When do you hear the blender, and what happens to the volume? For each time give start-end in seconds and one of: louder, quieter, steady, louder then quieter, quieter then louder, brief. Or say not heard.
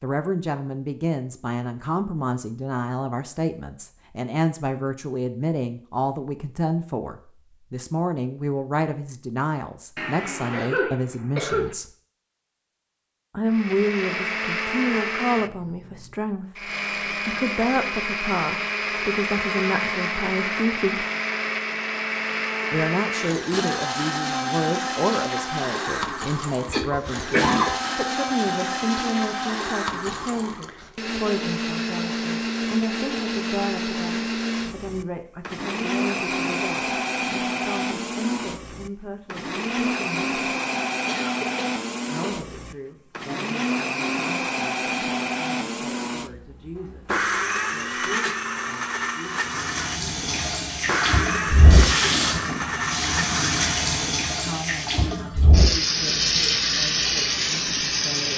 13.4-54.1 steady.